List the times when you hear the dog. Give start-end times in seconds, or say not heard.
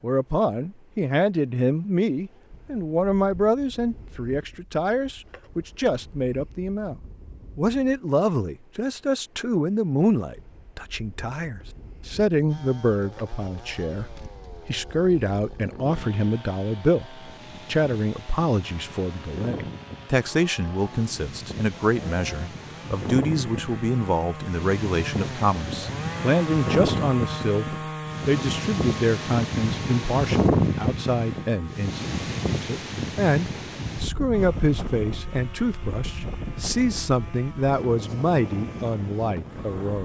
not heard.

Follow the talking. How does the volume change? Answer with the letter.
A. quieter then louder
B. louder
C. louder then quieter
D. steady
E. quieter
D.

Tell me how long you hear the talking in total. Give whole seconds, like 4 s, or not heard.
40 s.